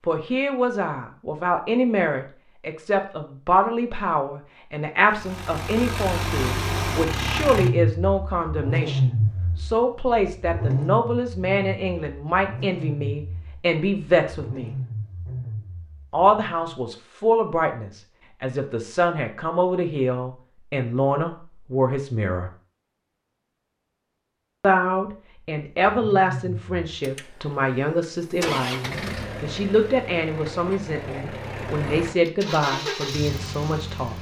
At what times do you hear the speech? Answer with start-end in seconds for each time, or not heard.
0.1-14.8, 16.1-22.5, 24.6-34.1.